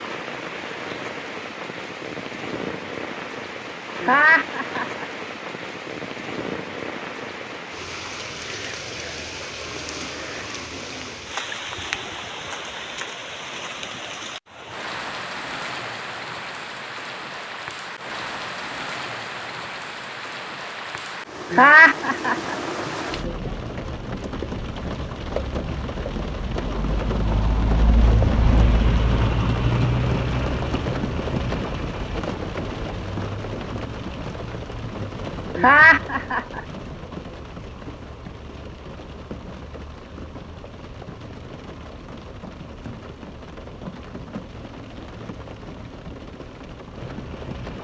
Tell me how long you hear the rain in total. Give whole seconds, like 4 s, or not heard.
48 s.